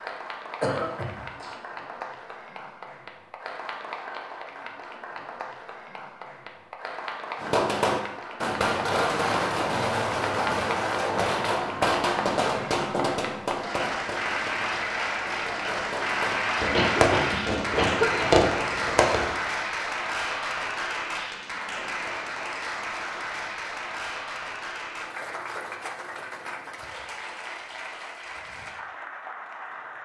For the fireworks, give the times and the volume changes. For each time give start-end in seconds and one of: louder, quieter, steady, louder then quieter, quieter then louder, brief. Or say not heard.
7.4-19.3 quieter then louder.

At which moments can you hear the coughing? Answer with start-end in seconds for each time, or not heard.
0.6-1.6, 16.6-18.4.